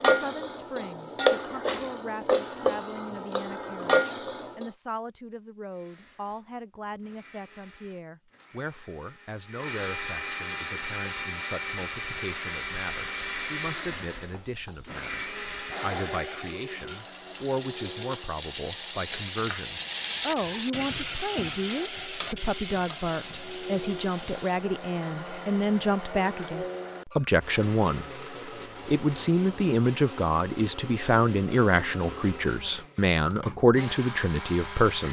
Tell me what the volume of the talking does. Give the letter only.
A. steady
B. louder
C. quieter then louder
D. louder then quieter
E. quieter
B.